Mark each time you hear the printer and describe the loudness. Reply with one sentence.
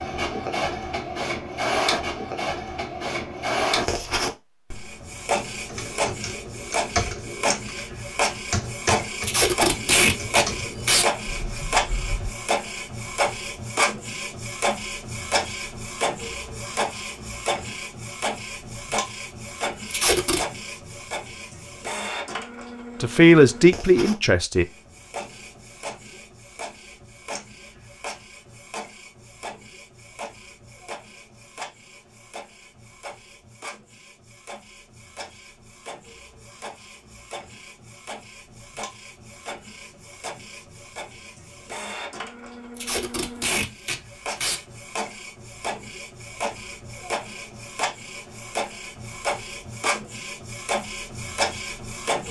The printer can be heard from 0.0 to 52.2 s, getting quieter then louder.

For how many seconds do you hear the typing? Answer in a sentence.
The typing can be heard for 7 seconds in total.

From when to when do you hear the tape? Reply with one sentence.
The tape can be heard from 9.2 to 11.1 s, from 19.9 to 20.4 s and from 42.8 to 44.6 s.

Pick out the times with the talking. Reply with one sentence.
You can hear the talking from 23.0 to 24.6 s.